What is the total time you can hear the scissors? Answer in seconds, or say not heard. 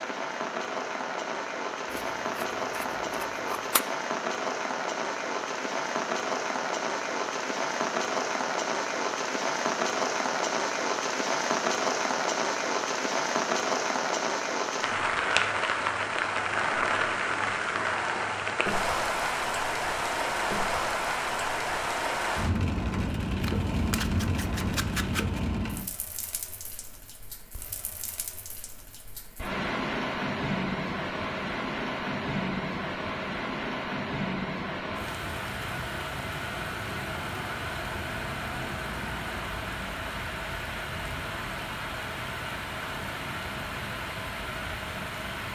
4 s.